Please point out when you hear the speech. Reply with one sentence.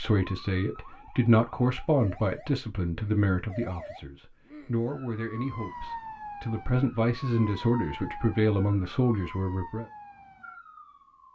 The speech can be heard from 0.0 to 9.8 s.